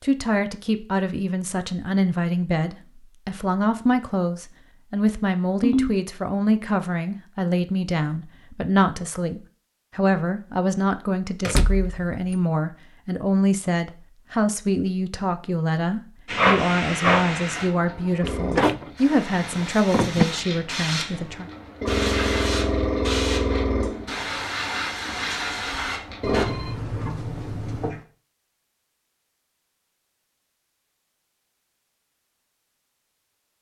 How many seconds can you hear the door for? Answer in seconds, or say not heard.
3 s.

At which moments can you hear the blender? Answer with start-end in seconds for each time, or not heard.
not heard.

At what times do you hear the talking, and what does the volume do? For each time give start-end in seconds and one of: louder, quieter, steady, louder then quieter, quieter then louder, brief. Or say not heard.
0.0-21.4 steady.